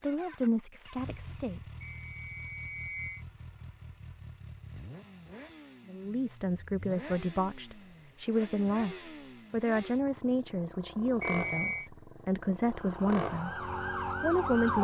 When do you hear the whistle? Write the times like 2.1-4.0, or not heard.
1.9-3.2, 11.2-11.9.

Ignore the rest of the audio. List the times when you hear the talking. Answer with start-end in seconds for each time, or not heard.
0.0-1.6, 5.8-13.6, 14.2-14.7.